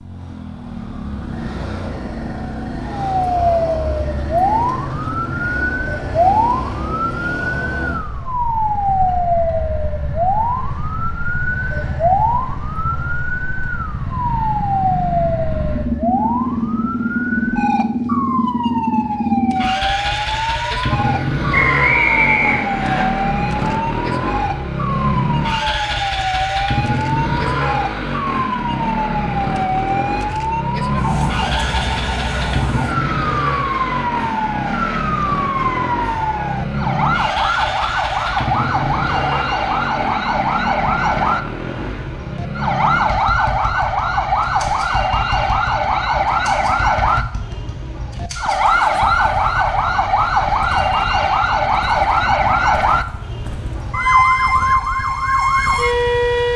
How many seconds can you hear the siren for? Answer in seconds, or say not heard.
54 s.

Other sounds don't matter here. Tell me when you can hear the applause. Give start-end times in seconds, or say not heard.
not heard.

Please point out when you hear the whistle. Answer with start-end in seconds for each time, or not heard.
21.5-23.1.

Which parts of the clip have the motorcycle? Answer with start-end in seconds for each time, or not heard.
0.0-56.5.